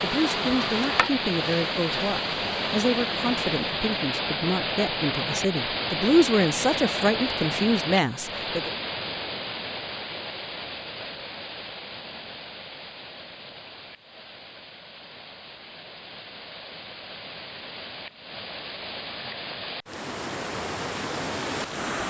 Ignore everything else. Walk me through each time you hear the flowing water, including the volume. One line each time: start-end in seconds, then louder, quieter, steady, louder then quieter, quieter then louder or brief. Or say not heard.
0.0-22.0 quieter then louder.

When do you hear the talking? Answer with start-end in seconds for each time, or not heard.
0.0-8.7.